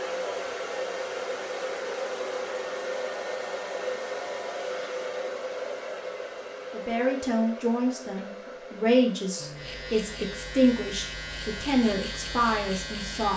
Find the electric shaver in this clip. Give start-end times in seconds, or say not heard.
9.3-13.3.